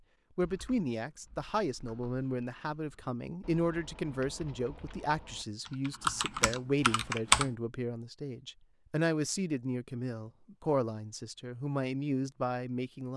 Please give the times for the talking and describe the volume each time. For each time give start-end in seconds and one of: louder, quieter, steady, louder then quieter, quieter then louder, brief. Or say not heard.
0.3-13.1 steady.